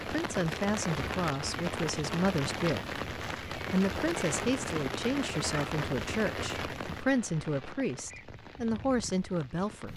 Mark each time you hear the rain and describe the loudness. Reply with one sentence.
You can hear the rain from 0.0 to 9.9 s, getting quieter.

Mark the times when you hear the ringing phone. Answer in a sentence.
The ringing phone can't be heard in this clip.